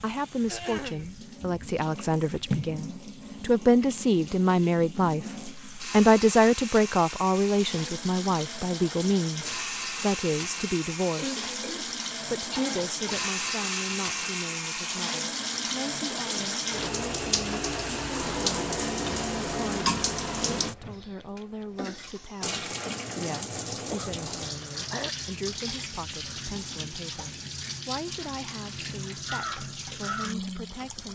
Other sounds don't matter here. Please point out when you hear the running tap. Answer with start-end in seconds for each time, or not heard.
0.0-31.0.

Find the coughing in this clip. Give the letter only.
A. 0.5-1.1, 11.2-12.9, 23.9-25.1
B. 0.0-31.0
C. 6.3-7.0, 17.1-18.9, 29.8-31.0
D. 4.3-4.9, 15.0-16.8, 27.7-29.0
A.